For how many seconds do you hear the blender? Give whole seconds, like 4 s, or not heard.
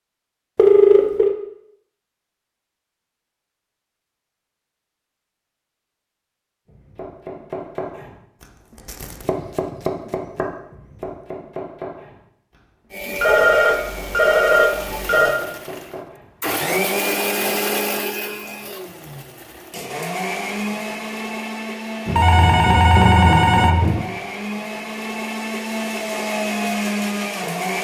15 s.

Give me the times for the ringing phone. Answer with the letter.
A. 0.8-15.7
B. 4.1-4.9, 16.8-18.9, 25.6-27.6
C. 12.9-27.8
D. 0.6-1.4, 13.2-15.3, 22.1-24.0
D.